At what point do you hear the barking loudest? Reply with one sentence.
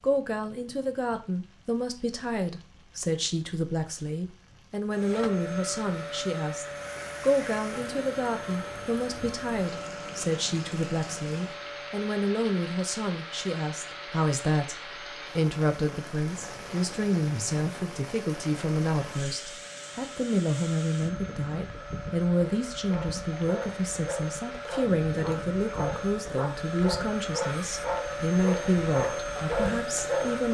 The volume of the barking peaks at 30 seconds.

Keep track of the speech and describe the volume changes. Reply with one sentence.
The volume of the speech stays about the same.